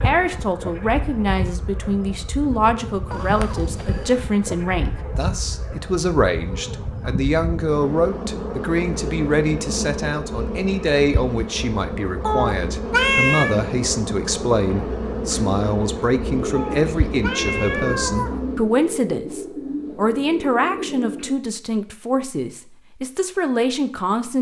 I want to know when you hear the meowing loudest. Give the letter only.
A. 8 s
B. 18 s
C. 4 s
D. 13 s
D.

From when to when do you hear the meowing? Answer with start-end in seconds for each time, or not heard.
3.1-4.1, 12.2-13.6, 16.6-18.3.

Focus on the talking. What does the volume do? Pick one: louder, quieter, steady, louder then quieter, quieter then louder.
steady.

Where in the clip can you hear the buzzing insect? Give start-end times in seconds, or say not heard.
0.0-18.7.